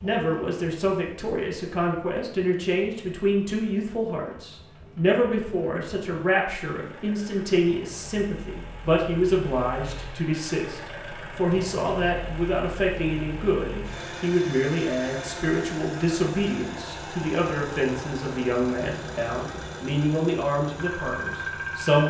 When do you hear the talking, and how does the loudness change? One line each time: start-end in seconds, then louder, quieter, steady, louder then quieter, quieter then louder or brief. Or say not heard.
0.0-22.0 steady.